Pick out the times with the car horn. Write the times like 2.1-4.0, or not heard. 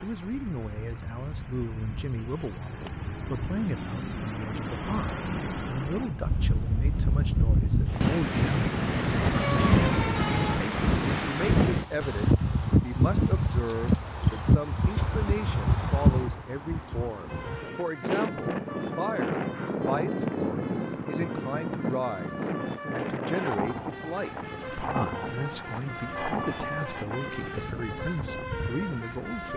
9.3-10.6, 26.1-27.1.